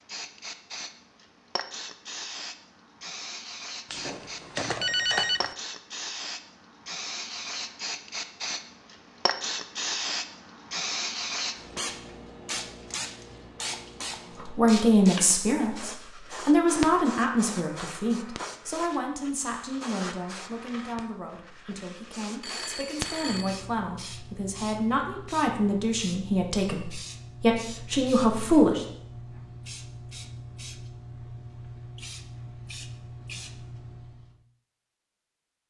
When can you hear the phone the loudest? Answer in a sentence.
The loudest moment of the phone is at 5 seconds.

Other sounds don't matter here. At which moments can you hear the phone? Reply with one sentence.
The phone can be heard from 3.9 to 5.5 s and from 21.7 to 23.6 s.